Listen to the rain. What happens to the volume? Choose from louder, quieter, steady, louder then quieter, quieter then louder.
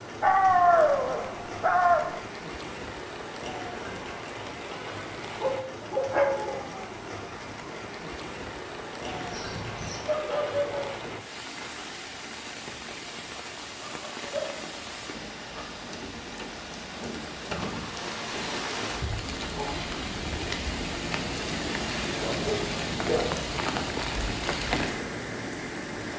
louder.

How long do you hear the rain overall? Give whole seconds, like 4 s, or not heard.
26 s.